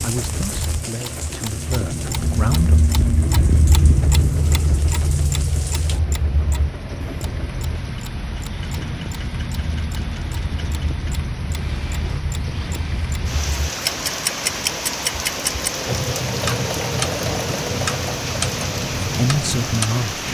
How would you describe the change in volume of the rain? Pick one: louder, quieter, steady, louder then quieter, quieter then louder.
louder.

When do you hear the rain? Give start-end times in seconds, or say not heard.
0.0-20.2.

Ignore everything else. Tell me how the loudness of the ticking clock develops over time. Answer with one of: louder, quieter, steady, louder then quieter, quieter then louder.
quieter then louder.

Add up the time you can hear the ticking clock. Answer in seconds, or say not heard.
20 s.